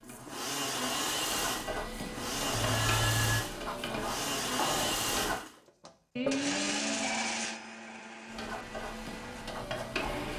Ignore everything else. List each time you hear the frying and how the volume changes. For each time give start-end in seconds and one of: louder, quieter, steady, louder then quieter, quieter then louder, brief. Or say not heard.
0.0-5.4 louder
8.2-10.3 brief.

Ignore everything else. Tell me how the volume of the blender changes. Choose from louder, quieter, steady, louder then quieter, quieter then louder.
quieter.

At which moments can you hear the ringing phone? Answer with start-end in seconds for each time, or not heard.
2.5-3.5, 6.2-7.9.